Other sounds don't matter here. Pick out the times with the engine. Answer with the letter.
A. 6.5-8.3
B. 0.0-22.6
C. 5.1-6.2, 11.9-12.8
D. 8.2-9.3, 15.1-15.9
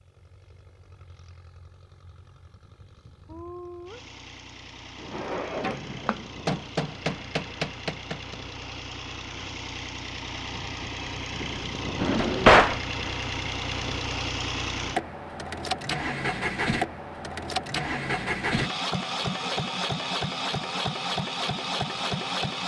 B.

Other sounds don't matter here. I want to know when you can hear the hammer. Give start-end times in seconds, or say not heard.
6.5-8.3.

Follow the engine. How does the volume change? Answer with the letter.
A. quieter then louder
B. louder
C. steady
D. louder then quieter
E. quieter
B.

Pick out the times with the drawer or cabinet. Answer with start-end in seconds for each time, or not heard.
5.1-6.2, 11.9-12.8.